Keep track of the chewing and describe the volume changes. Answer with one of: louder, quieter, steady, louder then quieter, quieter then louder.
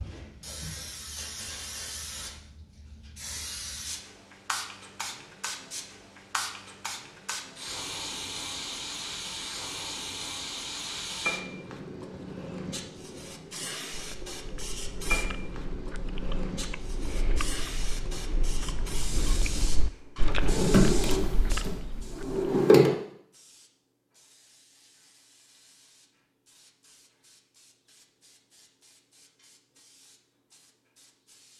louder.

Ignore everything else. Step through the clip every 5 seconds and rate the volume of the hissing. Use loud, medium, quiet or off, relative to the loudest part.
loud, loud, loud, loud, medium, quiet, quiet.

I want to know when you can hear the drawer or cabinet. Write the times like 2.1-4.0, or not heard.
20.3-22.9.